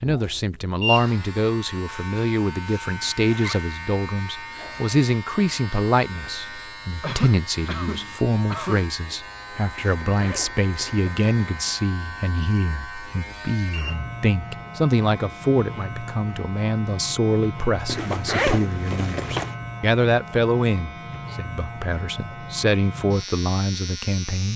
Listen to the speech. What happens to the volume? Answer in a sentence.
The loudness of the speech stays about the same.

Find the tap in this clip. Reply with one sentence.
The tap can't be heard in this clip.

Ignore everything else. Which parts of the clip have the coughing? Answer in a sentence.
You can hear the coughing from 7.0 to 8.8 s.